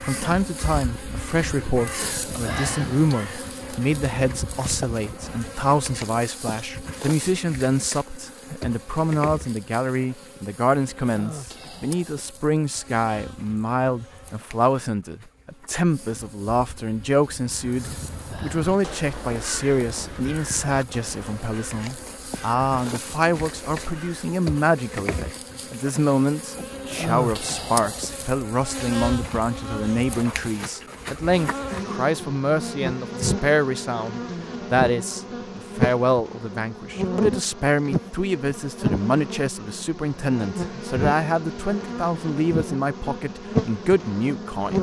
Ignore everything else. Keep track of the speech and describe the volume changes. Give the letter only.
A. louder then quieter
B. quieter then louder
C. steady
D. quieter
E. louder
C.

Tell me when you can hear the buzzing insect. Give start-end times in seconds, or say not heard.
0.0-44.7.